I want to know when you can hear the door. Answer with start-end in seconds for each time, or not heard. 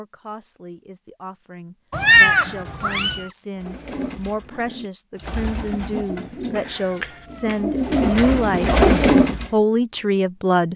not heard.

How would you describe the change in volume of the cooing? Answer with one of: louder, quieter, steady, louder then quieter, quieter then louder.
louder.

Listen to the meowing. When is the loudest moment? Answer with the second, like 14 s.
2 s.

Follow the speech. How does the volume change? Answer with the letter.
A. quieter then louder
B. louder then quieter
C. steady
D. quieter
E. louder
E.